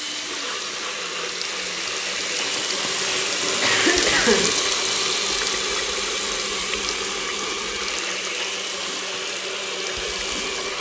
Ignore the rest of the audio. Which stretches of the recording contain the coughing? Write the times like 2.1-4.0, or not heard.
2.8-4.5.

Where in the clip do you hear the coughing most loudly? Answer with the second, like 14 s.
4 s.